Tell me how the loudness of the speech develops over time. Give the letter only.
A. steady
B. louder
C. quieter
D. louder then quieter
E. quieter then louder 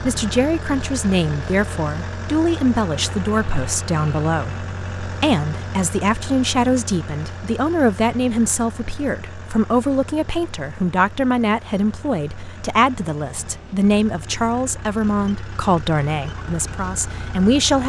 A.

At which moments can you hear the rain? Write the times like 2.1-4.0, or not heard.
not heard.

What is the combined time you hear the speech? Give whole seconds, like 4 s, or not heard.
18 s.